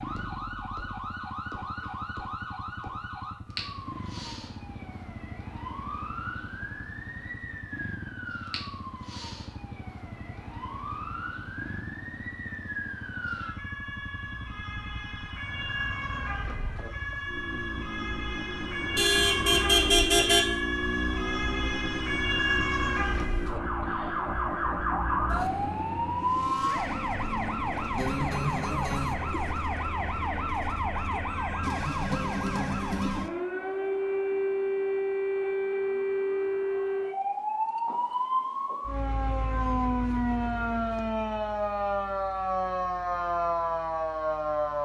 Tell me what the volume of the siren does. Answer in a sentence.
The volume of the siren goes up.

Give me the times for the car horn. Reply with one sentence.
You can hear the car horn from 18.9 to 20.4 s.